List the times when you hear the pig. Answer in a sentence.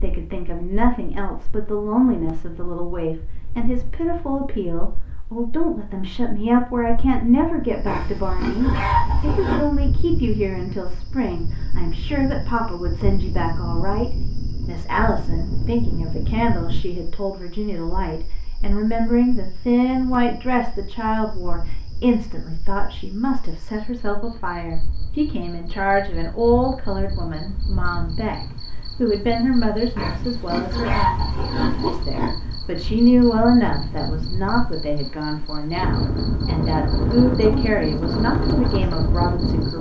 The pig can be heard from 7.8 to 9.7 s and from 29.9 to 32.4 s.